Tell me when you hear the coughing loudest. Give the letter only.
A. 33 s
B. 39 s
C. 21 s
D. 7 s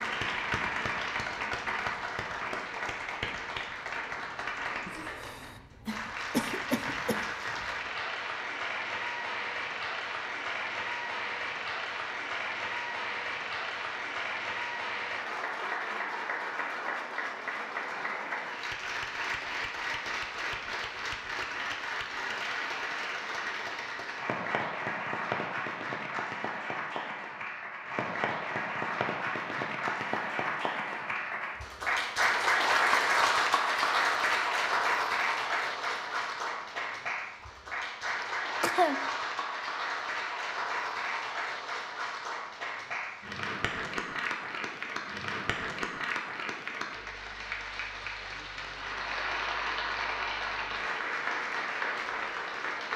B.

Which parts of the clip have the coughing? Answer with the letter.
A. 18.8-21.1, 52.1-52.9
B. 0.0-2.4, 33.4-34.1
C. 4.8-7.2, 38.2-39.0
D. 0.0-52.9
C.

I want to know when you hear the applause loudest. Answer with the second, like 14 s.
33 s.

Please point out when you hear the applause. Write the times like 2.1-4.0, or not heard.
0.0-52.9.